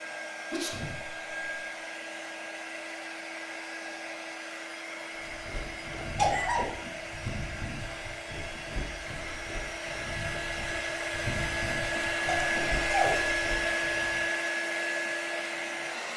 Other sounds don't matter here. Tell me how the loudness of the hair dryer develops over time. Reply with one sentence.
The volume of the hair dryer goes up.